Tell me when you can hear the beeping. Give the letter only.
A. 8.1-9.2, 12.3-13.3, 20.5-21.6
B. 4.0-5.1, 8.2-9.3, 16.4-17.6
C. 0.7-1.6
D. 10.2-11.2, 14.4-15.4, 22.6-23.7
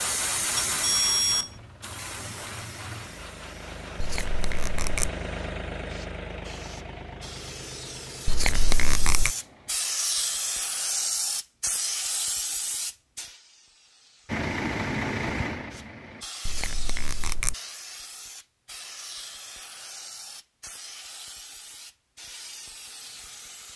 C.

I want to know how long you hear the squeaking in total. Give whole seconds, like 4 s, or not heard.
3 s.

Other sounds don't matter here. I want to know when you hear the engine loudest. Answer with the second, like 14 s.
15 s.